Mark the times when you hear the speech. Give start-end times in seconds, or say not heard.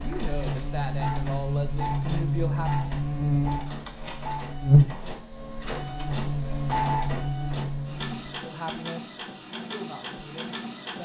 0.0-2.9, 8.4-11.0.